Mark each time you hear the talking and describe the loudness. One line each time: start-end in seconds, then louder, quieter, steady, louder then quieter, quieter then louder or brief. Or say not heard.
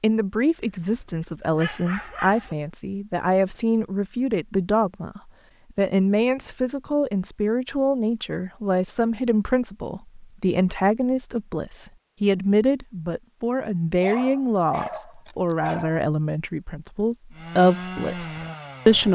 0.0-19.1 steady.